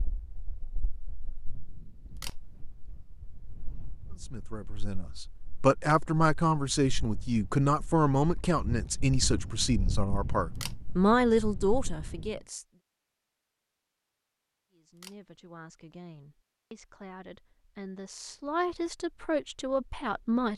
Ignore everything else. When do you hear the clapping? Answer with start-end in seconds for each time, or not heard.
not heard.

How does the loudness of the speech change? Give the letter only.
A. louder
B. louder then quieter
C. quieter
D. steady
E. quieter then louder
E.